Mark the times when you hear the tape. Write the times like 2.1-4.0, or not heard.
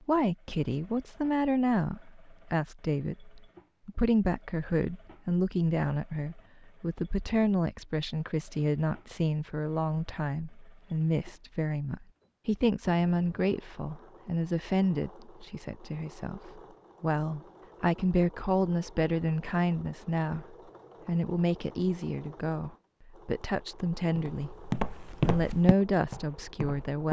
not heard.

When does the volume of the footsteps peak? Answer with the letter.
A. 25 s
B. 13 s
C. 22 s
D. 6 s
A.